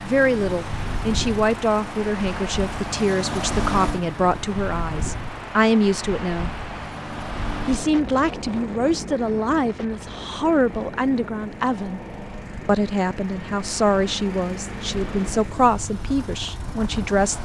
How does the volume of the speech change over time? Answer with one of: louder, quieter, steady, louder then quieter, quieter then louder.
steady.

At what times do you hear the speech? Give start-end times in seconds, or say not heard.
0.0-6.5, 7.7-12.0, 12.7-17.4.